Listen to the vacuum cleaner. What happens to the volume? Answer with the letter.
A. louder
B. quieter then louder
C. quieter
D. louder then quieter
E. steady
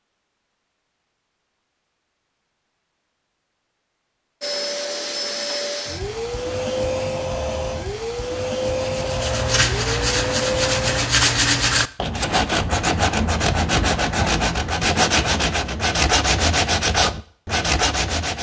E.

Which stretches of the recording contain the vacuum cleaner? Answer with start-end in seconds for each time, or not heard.
4.4-11.1.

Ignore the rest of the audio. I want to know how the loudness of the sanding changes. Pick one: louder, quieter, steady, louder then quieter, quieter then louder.
steady.